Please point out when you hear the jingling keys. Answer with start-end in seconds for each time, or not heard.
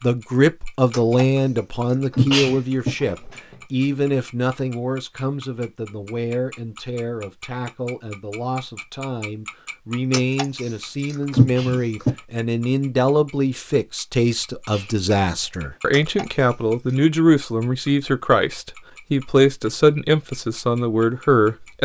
0.9-2.9, 10.1-12.1, 15.9-16.9.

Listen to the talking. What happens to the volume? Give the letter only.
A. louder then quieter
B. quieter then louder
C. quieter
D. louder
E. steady
B.